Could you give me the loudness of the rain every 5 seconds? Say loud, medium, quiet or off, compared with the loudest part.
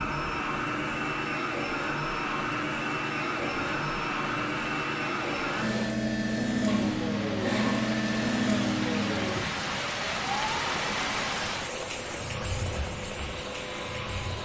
medium, loud, loud.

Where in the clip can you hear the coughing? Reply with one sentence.
You can hear the coughing from 6.7 to 7.9 s.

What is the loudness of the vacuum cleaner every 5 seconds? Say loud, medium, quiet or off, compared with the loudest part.
loud, loud, medium.